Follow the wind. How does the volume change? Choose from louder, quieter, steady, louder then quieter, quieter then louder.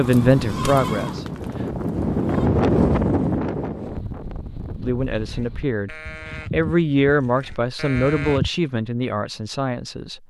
louder then quieter.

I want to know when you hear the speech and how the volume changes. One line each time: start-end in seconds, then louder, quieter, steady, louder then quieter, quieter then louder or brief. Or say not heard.
0.0-1.6 brief
4.8-10.2 louder then quieter.